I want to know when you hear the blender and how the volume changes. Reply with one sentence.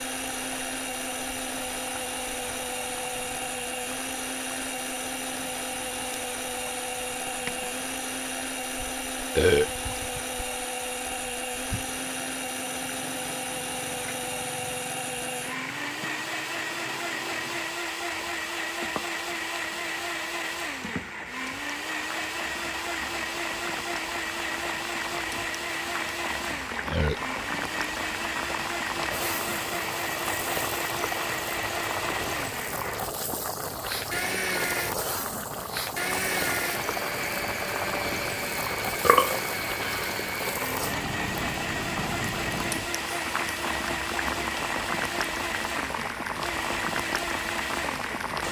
You can hear the blender from 0.0 to 48.4 s, at a steady volume.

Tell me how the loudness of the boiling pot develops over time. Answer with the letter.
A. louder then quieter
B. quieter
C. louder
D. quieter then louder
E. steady
C.